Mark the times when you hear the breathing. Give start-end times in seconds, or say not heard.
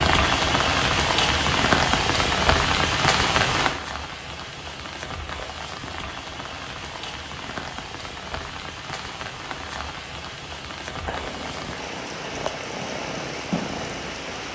not heard.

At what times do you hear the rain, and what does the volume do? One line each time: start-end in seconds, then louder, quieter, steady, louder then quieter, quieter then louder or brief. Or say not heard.
0.0-14.5 quieter.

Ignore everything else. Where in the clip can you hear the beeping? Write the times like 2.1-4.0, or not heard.
not heard.